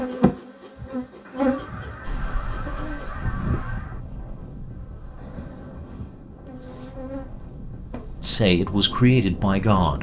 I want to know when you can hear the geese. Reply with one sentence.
You can hear the geese from 1.2 to 4.0 s.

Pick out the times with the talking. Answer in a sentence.
You can hear the talking from 8.2 to 9.9 s.